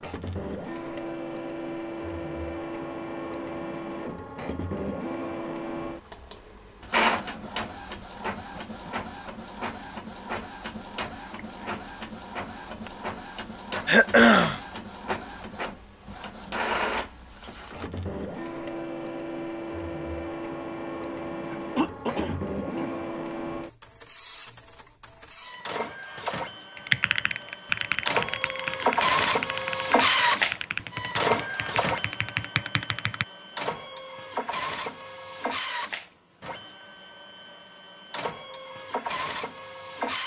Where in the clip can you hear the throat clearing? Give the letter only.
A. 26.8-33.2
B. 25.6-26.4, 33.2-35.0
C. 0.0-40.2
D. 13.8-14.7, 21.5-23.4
D.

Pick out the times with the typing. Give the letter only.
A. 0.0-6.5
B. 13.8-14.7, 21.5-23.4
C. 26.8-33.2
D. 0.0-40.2
C.